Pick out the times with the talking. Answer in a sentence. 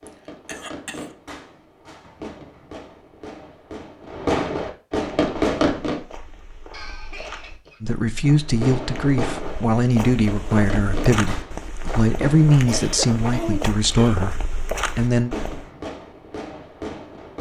You can hear the talking from 7.8 to 15.3 s.